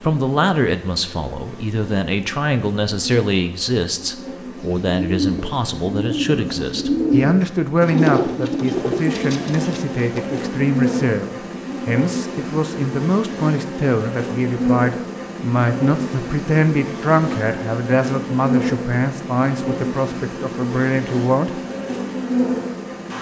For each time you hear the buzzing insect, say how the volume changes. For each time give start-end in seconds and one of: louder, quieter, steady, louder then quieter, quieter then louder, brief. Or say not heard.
0.0-23.1 louder.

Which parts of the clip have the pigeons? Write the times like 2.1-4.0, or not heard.
4.5-10.4.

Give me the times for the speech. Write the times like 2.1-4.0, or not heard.
0.0-21.6.